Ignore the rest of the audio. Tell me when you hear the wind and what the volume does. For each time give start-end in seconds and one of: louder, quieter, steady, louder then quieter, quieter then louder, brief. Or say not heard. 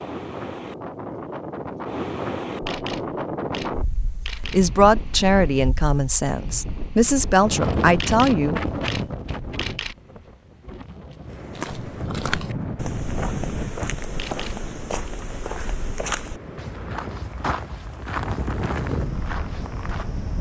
0.0-20.3 steady.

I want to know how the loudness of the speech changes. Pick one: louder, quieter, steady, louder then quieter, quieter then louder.
quieter then louder.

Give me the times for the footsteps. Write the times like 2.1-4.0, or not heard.
11.5-20.2.